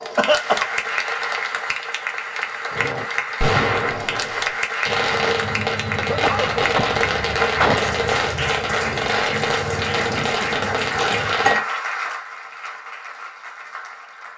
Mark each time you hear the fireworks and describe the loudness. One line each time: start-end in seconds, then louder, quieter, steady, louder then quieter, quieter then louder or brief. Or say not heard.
2.7-11.6 steady.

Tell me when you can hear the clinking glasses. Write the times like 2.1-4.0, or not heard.
11.4-12.2.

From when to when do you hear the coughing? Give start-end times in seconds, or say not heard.
0.1-0.7, 5.9-7.8, 9.9-11.3.